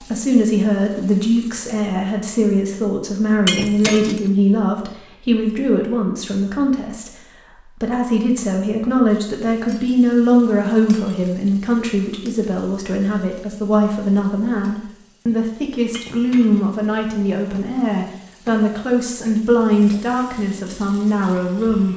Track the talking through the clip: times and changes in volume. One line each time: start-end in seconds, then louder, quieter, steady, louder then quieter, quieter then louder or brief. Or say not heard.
0.0-21.9 steady.